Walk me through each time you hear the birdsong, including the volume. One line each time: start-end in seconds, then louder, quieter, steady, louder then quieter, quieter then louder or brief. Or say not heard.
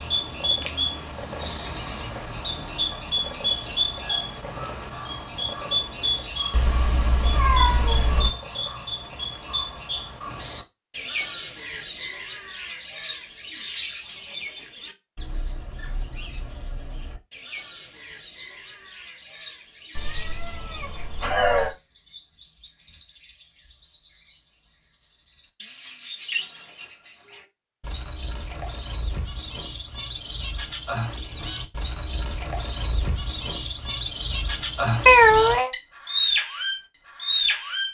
0.0-37.8 quieter then louder.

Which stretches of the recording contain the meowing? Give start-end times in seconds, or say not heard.
6.5-8.3, 19.9-21.8, 35.0-35.7.